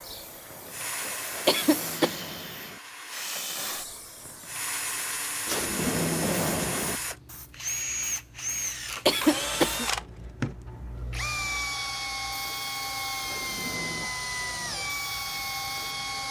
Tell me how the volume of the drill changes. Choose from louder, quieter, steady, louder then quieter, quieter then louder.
louder.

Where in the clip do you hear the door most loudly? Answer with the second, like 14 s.
6 s.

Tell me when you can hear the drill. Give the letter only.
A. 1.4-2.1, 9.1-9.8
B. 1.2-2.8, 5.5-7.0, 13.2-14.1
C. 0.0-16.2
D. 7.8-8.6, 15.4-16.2
C.